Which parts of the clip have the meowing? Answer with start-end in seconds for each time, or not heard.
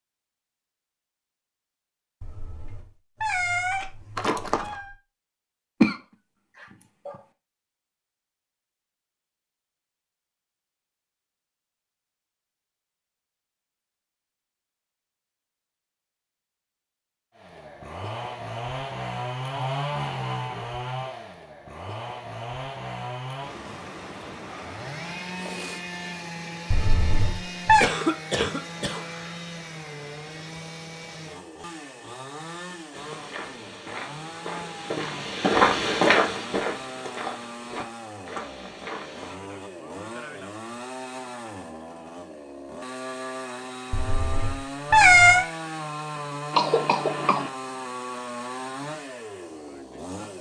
2.2-4.8, 26.7-27.9, 43.9-45.5.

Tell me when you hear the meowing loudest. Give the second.
45 s.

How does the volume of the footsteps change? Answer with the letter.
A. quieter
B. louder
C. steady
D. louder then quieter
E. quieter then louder
D.